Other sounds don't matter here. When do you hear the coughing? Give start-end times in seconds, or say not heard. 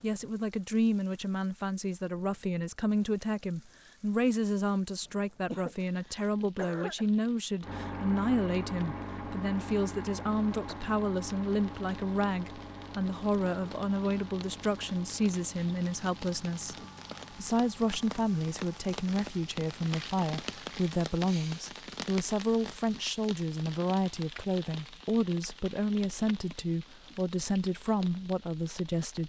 5.5-7.0.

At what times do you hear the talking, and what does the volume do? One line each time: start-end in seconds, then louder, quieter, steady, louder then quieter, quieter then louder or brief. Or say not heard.
0.0-29.2 steady.